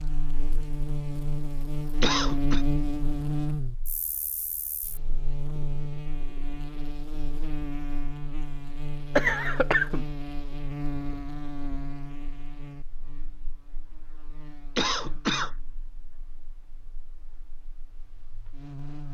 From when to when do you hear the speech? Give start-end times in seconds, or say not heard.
not heard.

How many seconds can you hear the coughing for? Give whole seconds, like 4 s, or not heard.
2 s.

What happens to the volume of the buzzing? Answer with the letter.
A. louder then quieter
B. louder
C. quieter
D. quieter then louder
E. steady
C.